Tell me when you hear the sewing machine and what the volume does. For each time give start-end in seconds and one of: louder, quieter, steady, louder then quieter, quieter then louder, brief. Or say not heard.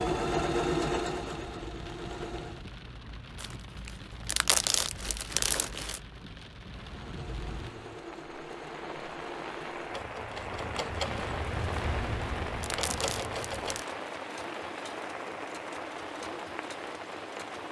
0.0-2.6 brief
6.8-17.6 louder then quieter.